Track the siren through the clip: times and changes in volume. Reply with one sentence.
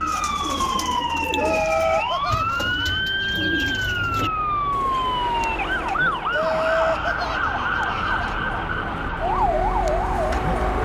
The siren can be heard from 0.0 to 10.8 s, at a steady volume.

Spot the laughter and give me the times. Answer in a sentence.
You can hear the laughter from 1.4 to 3.0 s and from 6.3 to 8.3 s.